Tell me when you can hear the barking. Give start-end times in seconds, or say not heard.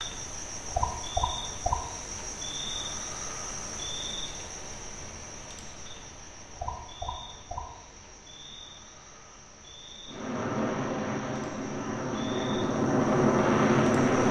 not heard.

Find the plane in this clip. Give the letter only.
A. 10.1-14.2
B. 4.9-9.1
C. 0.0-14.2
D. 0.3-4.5
A.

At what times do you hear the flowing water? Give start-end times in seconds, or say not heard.
not heard.